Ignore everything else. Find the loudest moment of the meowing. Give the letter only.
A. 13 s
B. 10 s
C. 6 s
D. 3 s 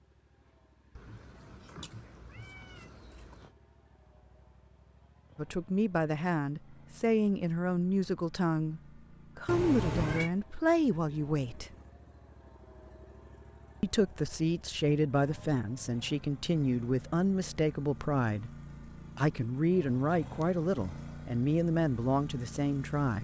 B.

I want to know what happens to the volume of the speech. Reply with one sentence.
The loudness of the speech stays about the same.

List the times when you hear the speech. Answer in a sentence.
The speech can be heard from 5.3 to 11.7 s, from 13.8 to 18.5 s and from 19.1 to 23.1 s.